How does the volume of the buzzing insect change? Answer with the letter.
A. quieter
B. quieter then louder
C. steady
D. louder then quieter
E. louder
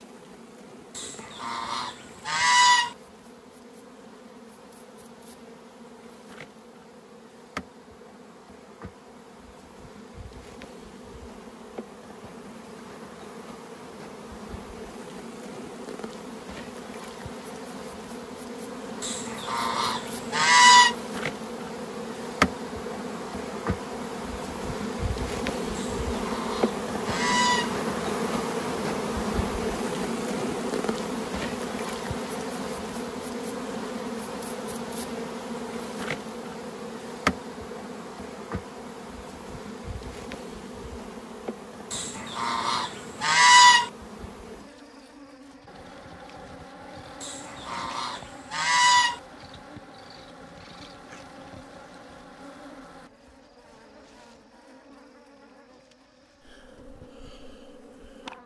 D.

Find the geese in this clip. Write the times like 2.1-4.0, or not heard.
0.9-3.0, 19.0-20.9, 25.8-27.8, 41.9-43.9, 47.2-49.2.